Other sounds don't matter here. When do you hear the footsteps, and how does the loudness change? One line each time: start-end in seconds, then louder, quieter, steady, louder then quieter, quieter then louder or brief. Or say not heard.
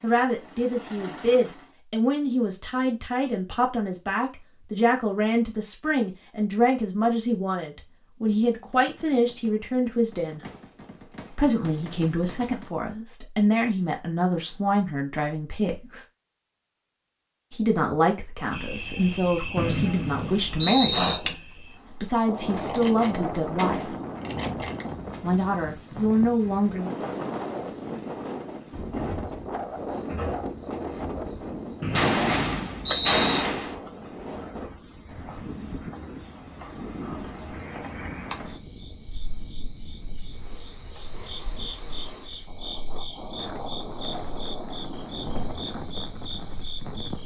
not heard.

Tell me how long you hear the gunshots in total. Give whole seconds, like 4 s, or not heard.
9 s.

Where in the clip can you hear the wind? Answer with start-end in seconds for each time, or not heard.
22.2-47.2.